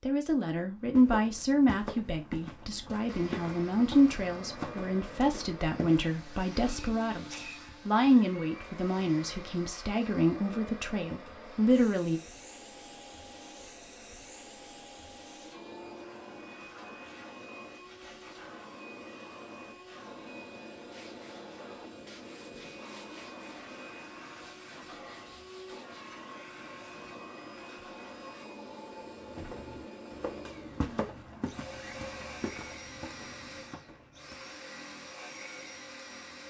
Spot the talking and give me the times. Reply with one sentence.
The talking can be heard from 0.0 to 12.2 s.